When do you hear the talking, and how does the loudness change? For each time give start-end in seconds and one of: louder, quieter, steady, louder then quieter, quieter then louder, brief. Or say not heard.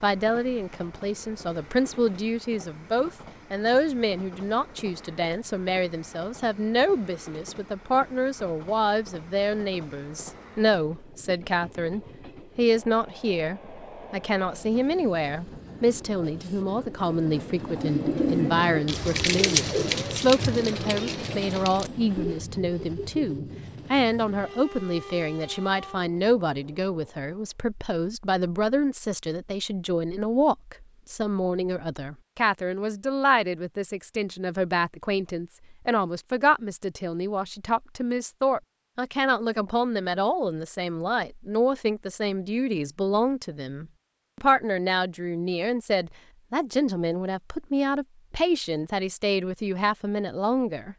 0.0-50.9 steady.